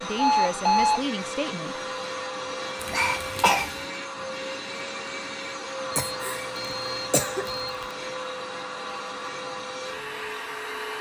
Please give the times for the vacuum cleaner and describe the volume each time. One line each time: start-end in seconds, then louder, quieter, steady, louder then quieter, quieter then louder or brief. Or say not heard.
0.0-10.9 steady.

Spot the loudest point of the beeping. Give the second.
1 s.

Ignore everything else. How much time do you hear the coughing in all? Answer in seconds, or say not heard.
3 s.